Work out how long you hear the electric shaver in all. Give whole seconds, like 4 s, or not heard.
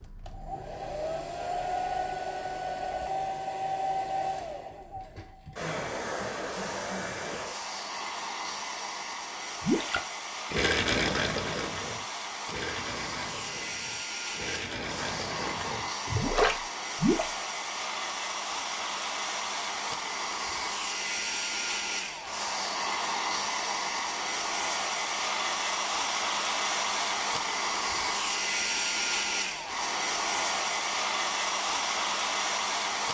not heard.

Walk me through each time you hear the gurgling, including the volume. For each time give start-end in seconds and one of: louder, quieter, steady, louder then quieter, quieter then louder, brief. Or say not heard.
9.6-17.3 quieter then louder.